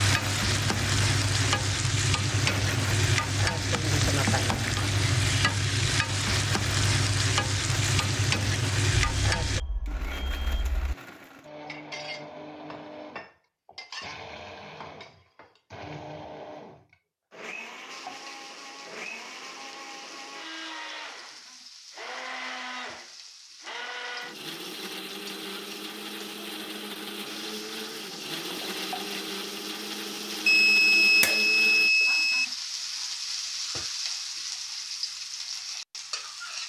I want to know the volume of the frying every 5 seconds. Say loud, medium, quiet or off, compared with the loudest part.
loud, loud, off, quiet, quiet, quiet, medium, medium.